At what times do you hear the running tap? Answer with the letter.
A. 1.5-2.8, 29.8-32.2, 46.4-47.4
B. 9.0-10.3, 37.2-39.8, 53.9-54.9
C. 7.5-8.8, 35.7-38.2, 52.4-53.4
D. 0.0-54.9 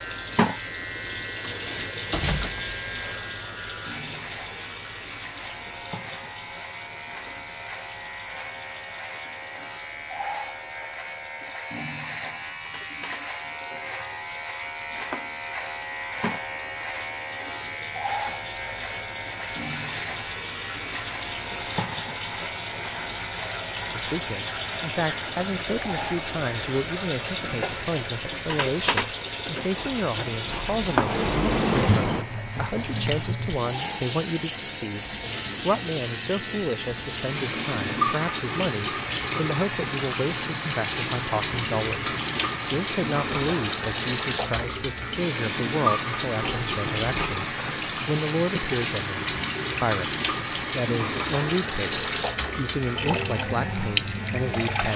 D.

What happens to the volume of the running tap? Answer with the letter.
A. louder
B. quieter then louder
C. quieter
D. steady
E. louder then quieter
A.